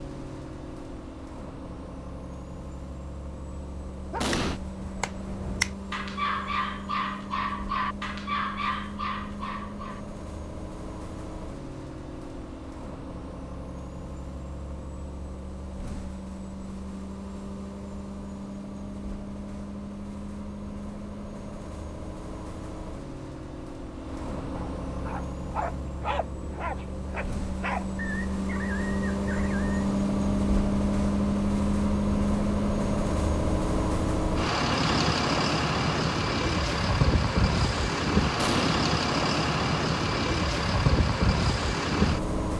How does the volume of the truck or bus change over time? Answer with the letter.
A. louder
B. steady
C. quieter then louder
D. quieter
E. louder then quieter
A.